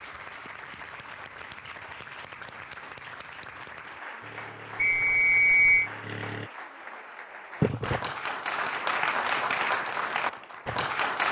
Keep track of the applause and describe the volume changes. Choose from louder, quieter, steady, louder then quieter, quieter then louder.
louder.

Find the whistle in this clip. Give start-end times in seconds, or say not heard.
4.8-5.9.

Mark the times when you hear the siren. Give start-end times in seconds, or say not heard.
not heard.